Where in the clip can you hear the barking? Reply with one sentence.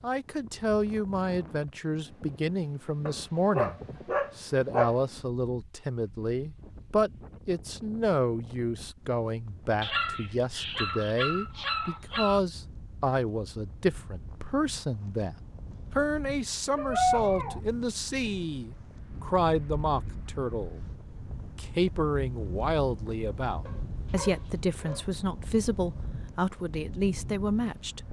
The barking can be heard from 3.0 to 5.0 s, from 9.8 to 12.4 s, from 16.8 to 17.6 s and from 23.6 to 25.1 s.